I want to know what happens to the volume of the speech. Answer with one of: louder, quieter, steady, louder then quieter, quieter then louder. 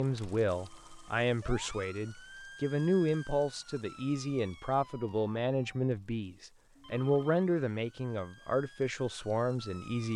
steady.